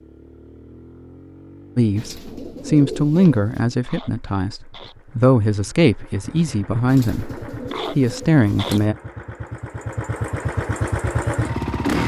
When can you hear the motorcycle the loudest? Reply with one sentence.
The loudest moment of the motorcycle is at 12 seconds.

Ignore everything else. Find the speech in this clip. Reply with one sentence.
The speech can be heard from 1.8 to 8.9 s.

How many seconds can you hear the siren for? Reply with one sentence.
You can't hear the siren here.